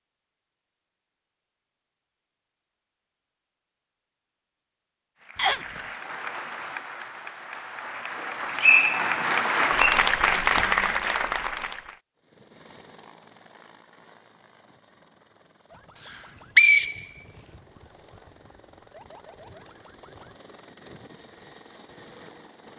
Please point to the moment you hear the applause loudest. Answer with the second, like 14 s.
10 s.